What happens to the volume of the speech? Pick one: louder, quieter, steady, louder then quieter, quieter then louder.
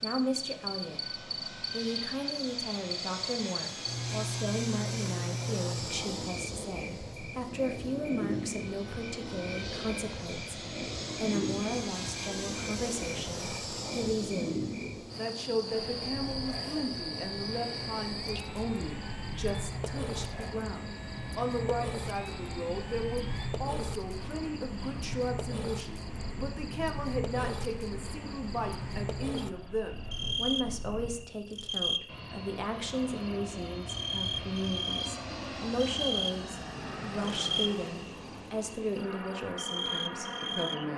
steady.